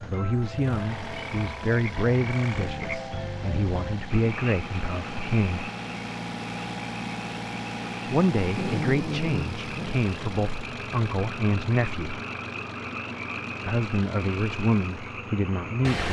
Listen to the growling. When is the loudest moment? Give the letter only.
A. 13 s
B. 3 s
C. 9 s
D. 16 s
C.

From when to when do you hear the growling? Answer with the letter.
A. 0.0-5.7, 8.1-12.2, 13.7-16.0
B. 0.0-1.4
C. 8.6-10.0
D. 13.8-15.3
C.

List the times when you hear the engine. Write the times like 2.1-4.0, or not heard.
0.0-16.0.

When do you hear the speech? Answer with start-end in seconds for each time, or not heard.
0.0-5.7, 8.1-12.2, 13.7-16.0.